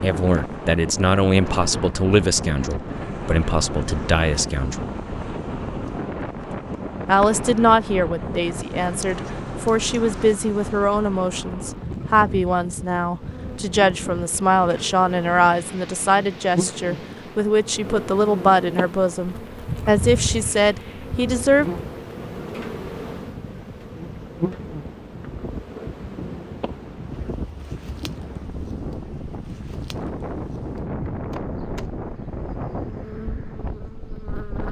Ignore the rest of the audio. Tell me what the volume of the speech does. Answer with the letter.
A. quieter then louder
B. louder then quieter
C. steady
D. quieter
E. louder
C.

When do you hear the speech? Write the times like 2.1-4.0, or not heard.
0.0-4.8, 7.0-21.6.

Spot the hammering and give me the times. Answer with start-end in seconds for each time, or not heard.
not heard.